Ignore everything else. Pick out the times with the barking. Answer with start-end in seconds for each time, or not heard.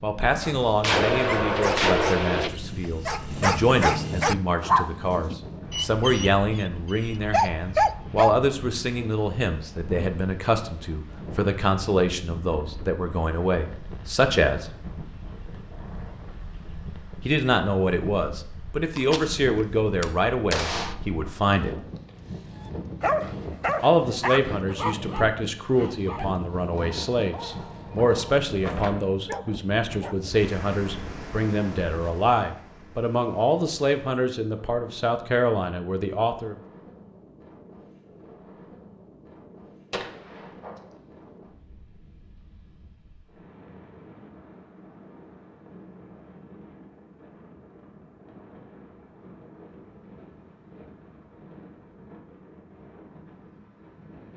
0.4-8.3, 22.6-30.3.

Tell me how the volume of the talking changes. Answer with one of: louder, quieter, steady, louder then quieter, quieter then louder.
steady.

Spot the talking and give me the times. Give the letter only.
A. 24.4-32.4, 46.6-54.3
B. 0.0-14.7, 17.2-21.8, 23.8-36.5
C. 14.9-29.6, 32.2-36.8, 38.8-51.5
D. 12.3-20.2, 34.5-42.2
B.